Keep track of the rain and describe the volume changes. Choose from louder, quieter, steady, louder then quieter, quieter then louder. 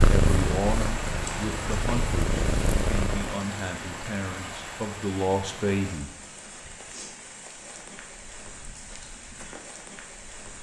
quieter.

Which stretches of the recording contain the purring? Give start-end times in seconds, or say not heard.
0.0-3.3.